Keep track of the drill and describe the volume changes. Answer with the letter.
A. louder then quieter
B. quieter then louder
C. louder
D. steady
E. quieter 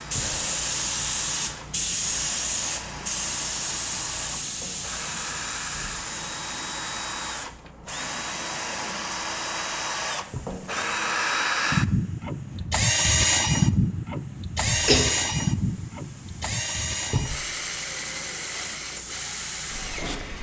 A.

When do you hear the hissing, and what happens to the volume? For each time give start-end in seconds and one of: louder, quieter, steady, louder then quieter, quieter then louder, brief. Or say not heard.
0.0-20.3 quieter then louder.